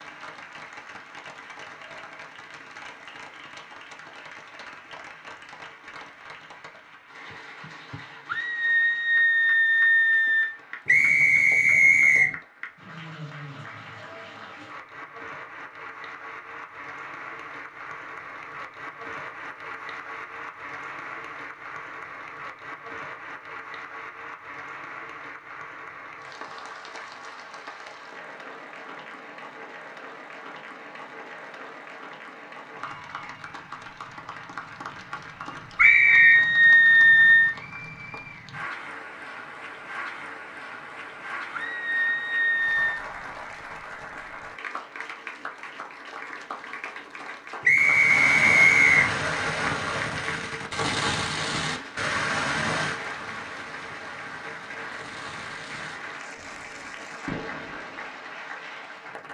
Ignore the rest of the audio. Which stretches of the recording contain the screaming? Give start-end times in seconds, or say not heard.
8.2-10.6, 35.8-37.5, 41.5-43.0.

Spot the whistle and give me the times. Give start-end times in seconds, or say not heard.
10.8-12.3, 35.8-36.4, 47.6-49.0.